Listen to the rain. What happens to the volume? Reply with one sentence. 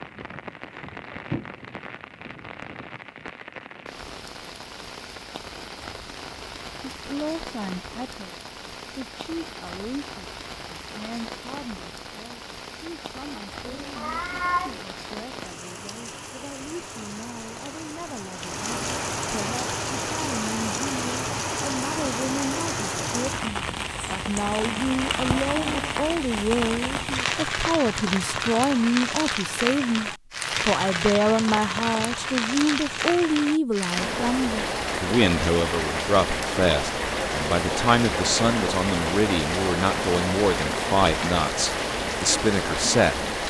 The loudness of the rain goes up.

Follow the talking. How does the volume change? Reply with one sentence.
The volume of the talking goes up.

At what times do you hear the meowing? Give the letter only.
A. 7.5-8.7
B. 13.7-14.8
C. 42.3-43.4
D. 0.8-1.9
B.